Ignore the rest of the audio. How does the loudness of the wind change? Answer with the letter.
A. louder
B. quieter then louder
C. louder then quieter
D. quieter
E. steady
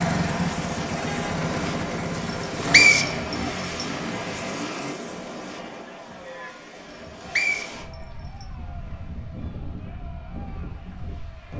D.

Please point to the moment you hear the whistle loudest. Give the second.
3 s.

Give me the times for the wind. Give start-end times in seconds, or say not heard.
0.0-11.5.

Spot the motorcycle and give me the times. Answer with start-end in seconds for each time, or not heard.
0.0-5.0.